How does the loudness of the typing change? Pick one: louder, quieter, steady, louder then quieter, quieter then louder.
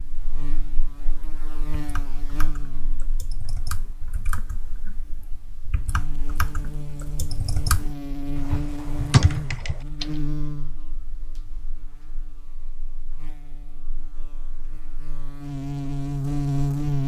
louder.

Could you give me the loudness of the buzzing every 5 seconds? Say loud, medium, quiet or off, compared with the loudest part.
quiet, medium, quiet, loud.